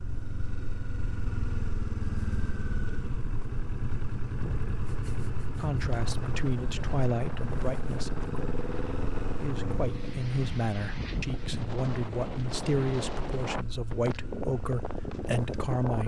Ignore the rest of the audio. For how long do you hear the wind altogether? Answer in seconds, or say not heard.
12 s.